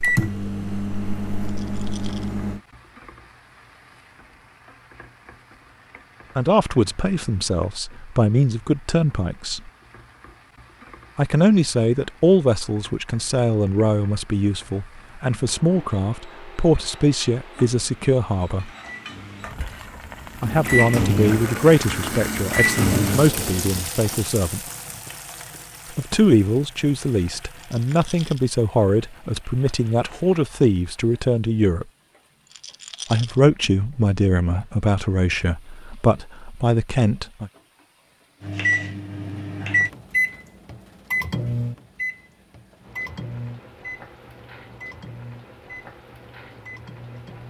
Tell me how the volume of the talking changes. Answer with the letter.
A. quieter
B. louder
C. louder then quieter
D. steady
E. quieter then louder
D.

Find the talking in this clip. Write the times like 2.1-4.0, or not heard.
6.3-9.7, 11.2-18.7, 20.4-24.6, 25.9-31.9, 33.1-37.5.